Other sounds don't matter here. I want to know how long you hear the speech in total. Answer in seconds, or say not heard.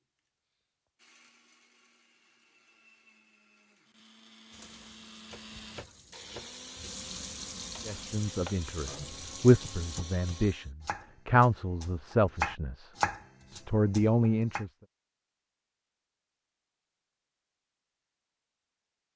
6 s.